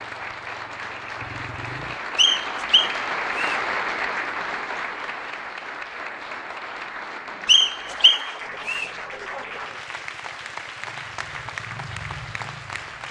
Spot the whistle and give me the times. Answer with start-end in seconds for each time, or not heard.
2.1-3.6, 7.5-8.9.